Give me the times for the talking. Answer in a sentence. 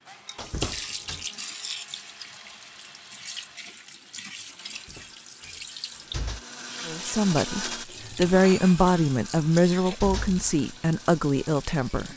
The talking can be heard from 6.8 to 12.1 s.